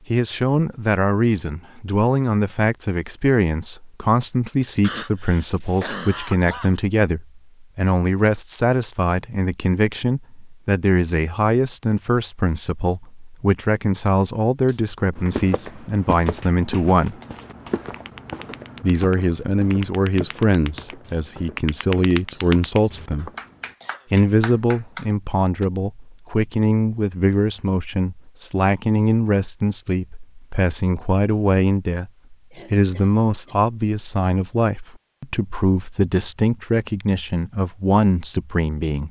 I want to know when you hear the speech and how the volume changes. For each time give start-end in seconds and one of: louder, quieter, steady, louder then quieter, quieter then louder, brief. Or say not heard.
0.1-17.1 steady
18.8-23.3 quieter then louder
24.1-39.0 steady.